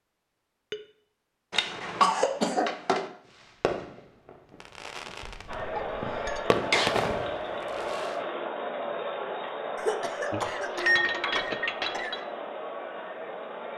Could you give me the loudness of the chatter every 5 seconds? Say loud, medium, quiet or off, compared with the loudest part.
off, loud, loud.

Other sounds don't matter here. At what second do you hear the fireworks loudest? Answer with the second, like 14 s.
7 s.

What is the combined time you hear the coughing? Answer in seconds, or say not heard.
5 s.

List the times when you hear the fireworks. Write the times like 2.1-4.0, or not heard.
3.4-8.2.